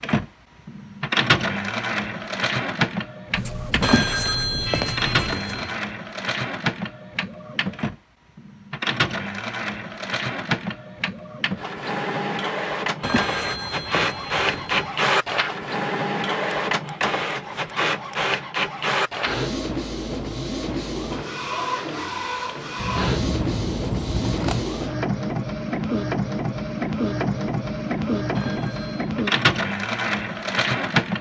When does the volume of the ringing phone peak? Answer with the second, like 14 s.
4 s.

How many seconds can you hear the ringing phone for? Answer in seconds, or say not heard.
5 s.